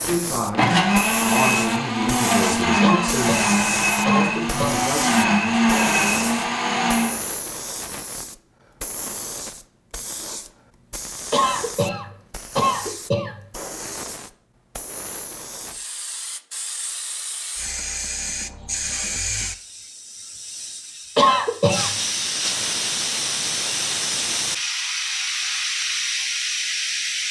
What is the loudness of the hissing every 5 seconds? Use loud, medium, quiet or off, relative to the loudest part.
medium, medium, medium, medium, loud, loud.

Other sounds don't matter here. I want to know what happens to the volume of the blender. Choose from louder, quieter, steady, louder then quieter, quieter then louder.
steady.